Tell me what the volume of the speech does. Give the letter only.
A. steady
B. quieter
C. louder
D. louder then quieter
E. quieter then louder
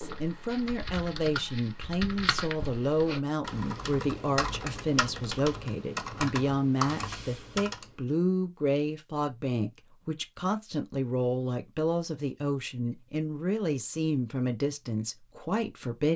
A.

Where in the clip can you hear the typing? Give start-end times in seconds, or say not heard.
0.0-7.9.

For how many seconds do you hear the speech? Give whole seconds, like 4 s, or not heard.
16 s.